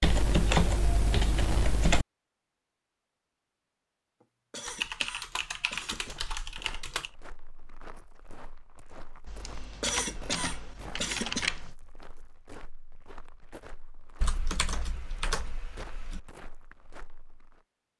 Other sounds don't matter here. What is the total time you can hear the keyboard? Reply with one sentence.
The keyboard can be heard for 9 seconds in total.